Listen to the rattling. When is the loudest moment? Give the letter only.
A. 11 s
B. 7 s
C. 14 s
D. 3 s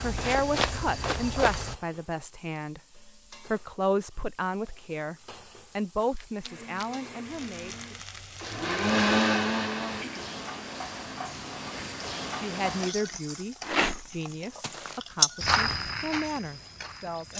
C.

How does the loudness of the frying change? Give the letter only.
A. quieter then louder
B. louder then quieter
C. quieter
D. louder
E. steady
D.